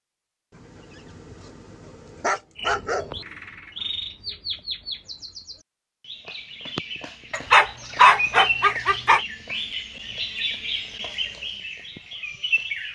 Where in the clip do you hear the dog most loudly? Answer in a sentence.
The volume of the dog peaks at 8 seconds.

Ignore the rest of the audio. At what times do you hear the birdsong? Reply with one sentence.
You can hear the birdsong from 2.5 to 12.9 s.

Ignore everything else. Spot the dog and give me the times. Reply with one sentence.
You can hear the dog from 0.6 to 3.2 s and from 7.3 to 9.2 s.